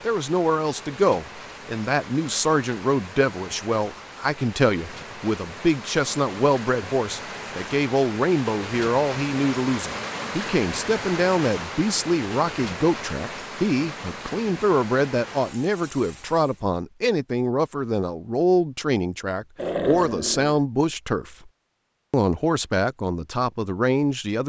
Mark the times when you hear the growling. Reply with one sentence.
The growling can be heard from 19.6 to 20.6 s.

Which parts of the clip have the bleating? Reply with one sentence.
The bleating can't be heard in this clip.